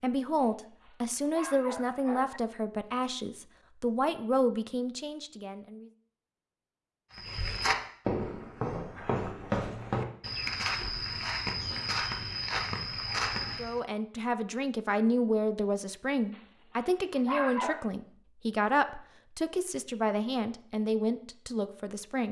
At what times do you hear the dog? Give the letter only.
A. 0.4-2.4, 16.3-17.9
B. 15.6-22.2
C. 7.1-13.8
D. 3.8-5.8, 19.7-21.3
A.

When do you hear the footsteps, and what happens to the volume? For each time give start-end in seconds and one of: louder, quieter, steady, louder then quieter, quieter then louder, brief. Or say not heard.
7.1-13.8 steady.